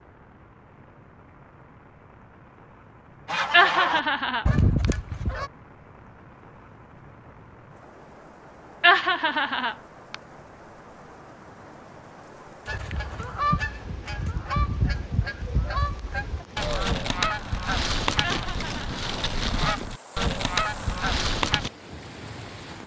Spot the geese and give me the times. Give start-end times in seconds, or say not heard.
3.2-5.5, 12.7-21.7.